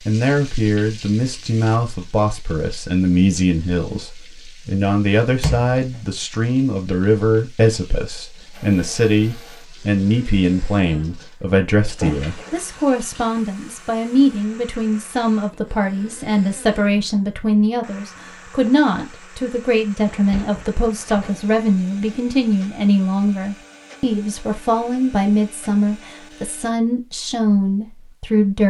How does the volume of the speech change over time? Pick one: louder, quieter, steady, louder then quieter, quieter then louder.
steady.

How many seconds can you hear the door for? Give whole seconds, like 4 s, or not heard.
3 s.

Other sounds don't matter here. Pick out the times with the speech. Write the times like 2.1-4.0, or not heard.
0.1-28.6.